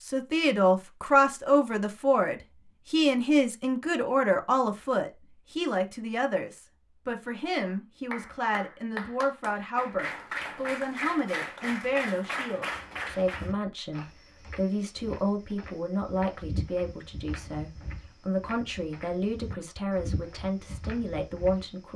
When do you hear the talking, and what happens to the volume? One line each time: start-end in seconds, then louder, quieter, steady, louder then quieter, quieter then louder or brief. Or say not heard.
0.0-21.9 quieter.